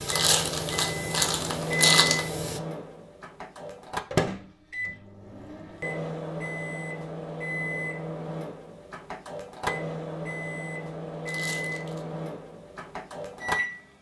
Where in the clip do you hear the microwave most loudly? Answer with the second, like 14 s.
2 s.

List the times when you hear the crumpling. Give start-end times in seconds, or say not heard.
0.1-2.2, 11.2-12.1.